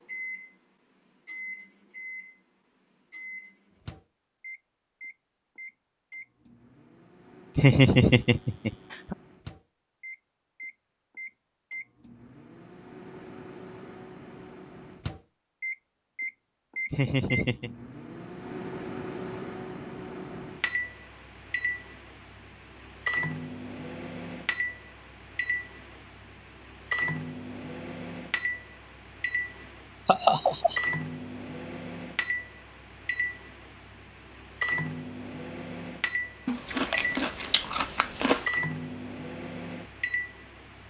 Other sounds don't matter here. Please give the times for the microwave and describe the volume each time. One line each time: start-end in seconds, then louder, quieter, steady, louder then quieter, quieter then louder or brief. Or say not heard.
0.0-40.8 louder.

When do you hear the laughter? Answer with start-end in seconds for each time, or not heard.
7.5-9.2, 16.9-17.7, 30.1-30.8.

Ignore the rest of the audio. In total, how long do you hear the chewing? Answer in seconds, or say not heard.
2 s.